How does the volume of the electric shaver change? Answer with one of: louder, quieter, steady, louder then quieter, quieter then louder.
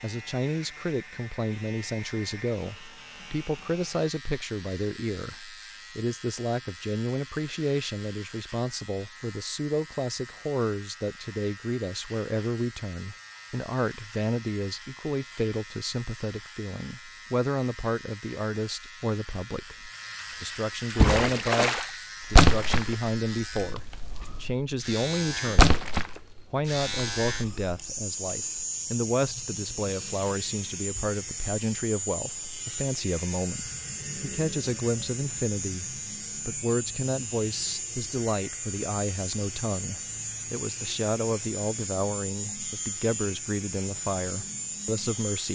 louder.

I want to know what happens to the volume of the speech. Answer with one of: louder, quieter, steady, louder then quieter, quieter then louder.
steady.